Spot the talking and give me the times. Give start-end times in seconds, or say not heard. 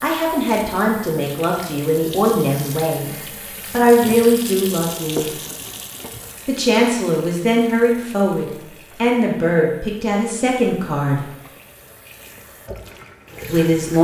0.0-3.0, 3.7-5.3, 6.5-11.3, 13.4-13.9.